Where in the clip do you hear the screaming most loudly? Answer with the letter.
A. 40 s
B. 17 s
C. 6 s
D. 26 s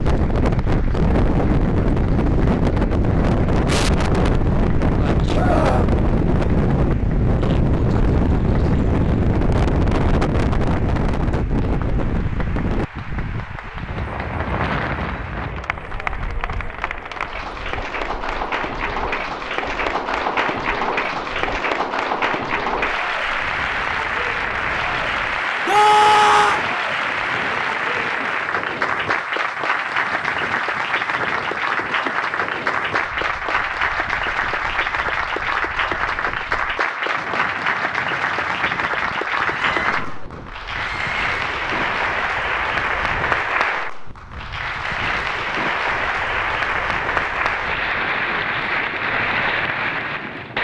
D.